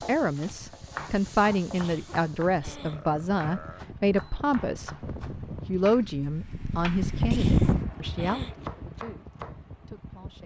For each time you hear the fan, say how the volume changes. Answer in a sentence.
The fan can be heard from 0.0 to 10.4 s, getting louder then quieter.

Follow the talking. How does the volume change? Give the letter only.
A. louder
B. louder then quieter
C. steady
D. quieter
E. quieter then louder
D.